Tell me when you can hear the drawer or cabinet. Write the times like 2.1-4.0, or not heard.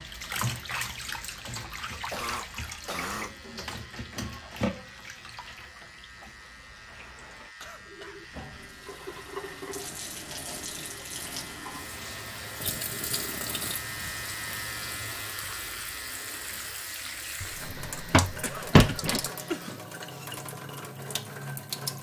17.4-19.2.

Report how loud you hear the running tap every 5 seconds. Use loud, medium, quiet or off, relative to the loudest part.
loud, medium, loud, loud, loud.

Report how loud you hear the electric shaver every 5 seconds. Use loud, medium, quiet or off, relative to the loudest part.
medium, medium, loud, loud, off.